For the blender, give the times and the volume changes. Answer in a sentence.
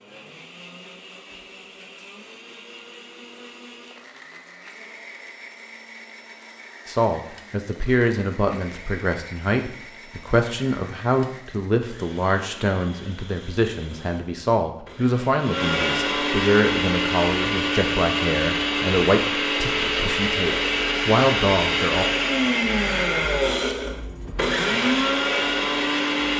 The blender can be heard from 0.0 to 26.3 s, getting louder.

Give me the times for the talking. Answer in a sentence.
The talking can be heard from 6.8 to 22.1 s.